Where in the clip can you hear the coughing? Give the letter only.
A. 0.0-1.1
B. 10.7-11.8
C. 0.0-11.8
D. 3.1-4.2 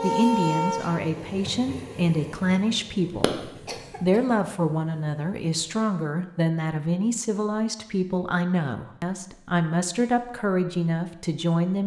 D.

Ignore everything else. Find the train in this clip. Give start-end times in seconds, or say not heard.
0.0-5.8.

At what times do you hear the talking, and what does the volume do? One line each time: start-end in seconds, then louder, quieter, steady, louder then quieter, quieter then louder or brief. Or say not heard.
0.0-11.8 steady.